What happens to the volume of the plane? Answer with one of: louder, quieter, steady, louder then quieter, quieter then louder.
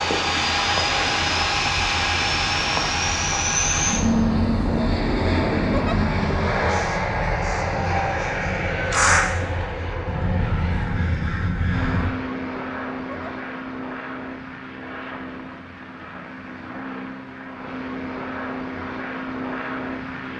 quieter.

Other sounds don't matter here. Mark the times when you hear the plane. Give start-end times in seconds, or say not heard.
0.0-20.3.